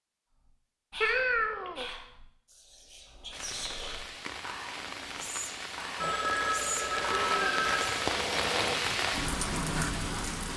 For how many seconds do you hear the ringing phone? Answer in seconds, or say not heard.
3 s.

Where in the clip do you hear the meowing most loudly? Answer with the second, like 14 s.
1 s.